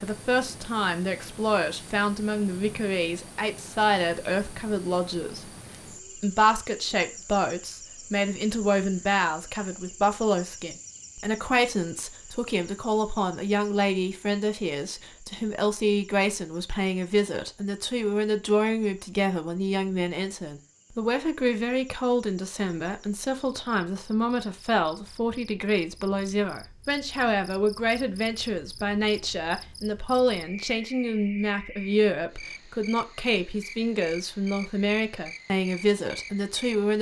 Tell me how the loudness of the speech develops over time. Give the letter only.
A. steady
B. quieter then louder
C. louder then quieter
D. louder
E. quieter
A.